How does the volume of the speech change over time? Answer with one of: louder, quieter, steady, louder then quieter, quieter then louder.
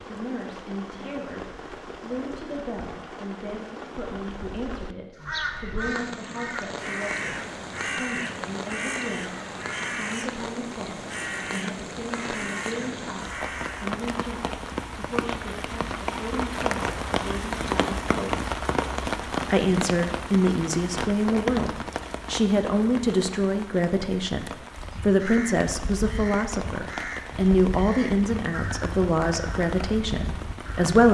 louder.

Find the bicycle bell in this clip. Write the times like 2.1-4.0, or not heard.
not heard.